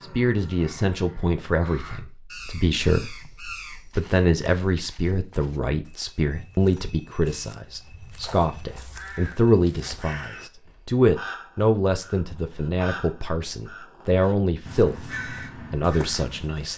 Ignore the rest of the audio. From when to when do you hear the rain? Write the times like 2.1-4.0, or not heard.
not heard.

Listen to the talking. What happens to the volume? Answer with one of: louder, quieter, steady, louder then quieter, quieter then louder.
steady.